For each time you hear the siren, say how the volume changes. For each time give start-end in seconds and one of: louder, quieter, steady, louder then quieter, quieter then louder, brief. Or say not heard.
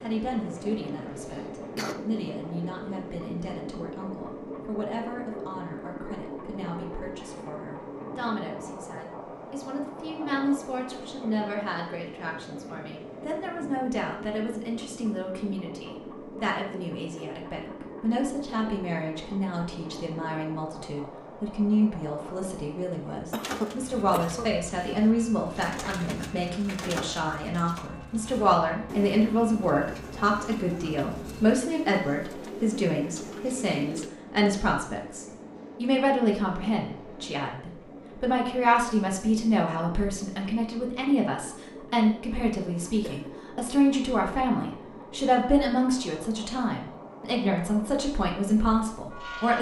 not heard.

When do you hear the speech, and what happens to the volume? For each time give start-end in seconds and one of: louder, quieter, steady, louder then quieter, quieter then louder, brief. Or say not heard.
0.0-49.5 louder.